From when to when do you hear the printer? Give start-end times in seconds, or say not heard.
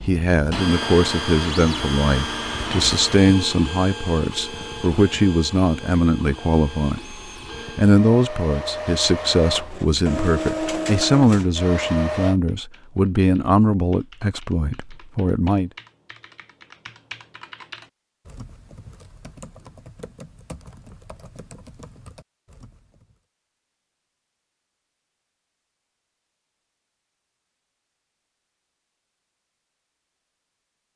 0.0-12.4.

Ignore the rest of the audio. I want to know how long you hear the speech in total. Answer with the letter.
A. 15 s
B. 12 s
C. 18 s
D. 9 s
A.